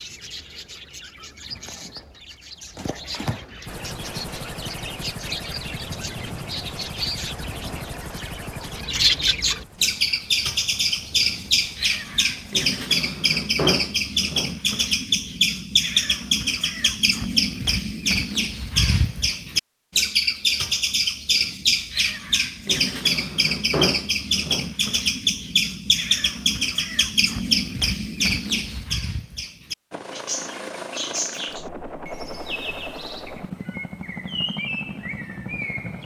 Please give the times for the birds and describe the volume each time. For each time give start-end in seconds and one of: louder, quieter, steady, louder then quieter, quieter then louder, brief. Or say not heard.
0.0-36.0 louder then quieter.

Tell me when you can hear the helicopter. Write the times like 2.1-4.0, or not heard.
3.6-12.7, 29.9-36.0.